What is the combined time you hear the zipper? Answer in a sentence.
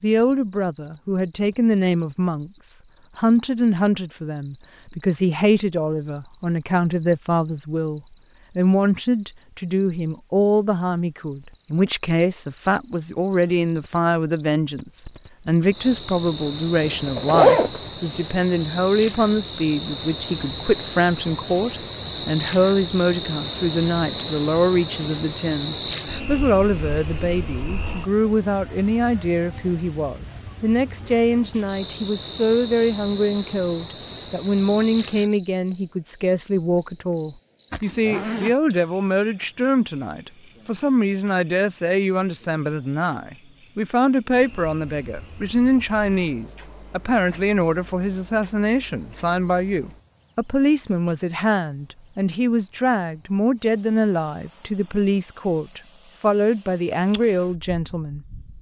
The zipper can be heard for 2 seconds in total.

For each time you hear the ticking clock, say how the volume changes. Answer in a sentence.
You can't hear the ticking clock here.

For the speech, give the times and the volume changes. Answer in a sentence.
You can hear the speech from 0.0 to 58.2 s, at a steady volume.